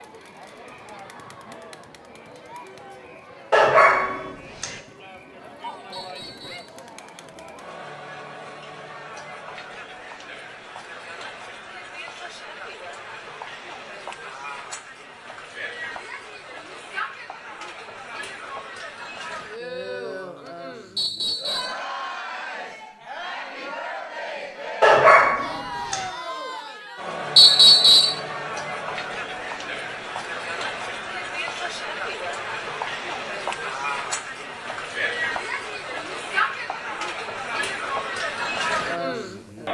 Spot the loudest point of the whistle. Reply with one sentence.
The volume of the whistle peaks at 28 seconds.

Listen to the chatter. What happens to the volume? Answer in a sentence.
The loudness of the chatter goes up.